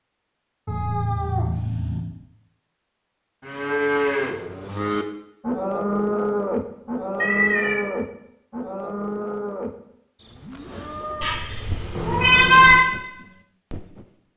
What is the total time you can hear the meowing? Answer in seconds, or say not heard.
4 s.